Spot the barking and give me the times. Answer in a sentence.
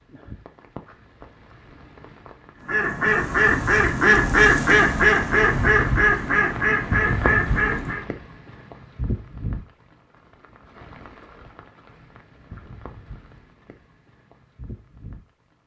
The barking can't be heard in this clip.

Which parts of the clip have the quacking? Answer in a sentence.
You can hear the quacking from 2.6 to 8.1 s.